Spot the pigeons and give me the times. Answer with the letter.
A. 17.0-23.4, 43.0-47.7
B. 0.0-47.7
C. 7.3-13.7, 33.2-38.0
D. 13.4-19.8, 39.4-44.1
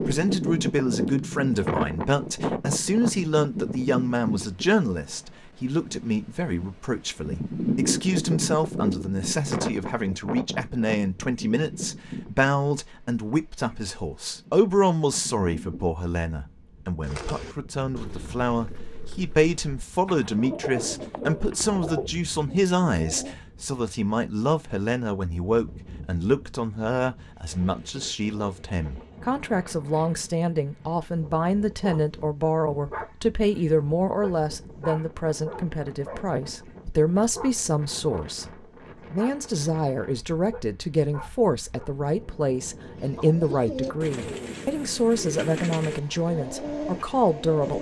A.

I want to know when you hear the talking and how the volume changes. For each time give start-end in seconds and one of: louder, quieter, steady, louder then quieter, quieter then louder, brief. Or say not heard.
0.0-47.7 steady.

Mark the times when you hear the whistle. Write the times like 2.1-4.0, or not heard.
not heard.